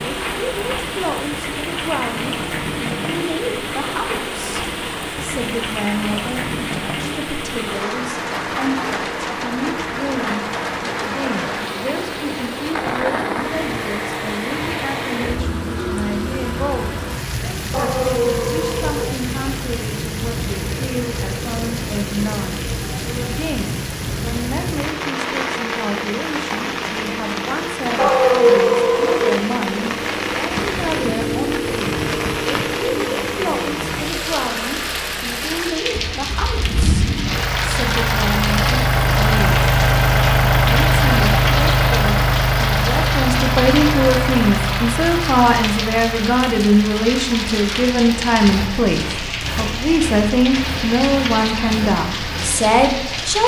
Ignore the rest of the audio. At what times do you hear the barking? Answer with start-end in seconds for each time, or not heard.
17.7-19.1, 27.9-29.4.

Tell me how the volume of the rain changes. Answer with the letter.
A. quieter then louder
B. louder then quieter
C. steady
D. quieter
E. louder
C.